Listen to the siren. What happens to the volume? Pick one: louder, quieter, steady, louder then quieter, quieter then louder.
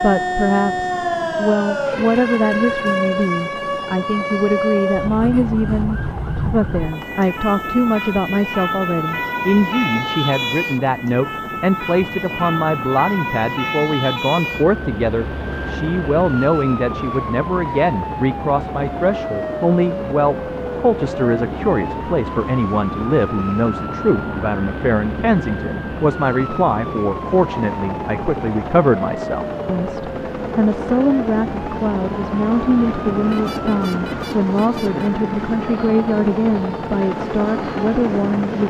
quieter.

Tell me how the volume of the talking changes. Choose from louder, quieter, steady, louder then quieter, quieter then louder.
steady.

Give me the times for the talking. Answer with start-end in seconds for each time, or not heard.
0.0-38.6.